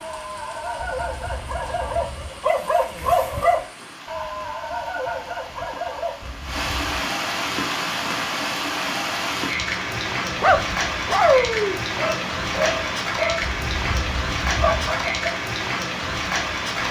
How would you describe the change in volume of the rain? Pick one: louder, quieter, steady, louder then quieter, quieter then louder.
louder.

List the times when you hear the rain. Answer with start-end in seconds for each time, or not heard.
0.0-16.8.